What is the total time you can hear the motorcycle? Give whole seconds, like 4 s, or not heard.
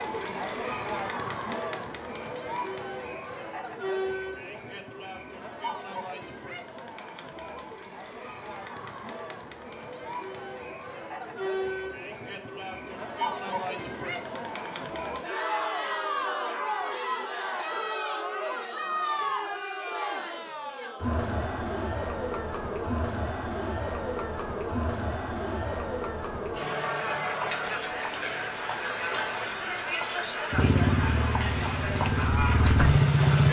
3 s.